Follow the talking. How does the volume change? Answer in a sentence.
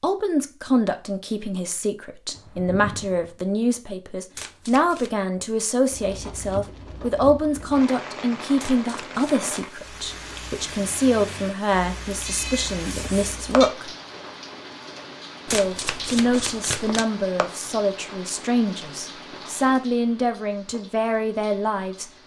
The volume of the talking stays about the same.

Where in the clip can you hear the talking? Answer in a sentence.
You can hear the talking from 0.0 to 13.9 s and from 15.5 to 22.1 s.